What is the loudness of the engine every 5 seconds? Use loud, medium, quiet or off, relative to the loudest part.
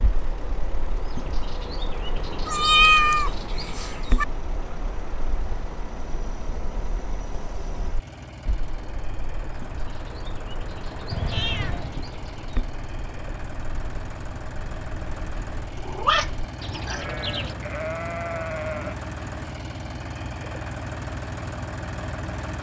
medium, medium, medium, loud, loud.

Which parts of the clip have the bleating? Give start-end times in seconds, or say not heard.
16.9-18.9.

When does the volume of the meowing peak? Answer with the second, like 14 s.
3 s.